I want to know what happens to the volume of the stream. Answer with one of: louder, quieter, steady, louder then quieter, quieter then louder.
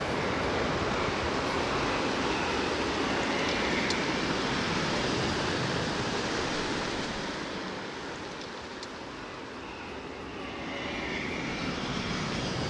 quieter.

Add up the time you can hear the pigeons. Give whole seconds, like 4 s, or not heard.
not heard.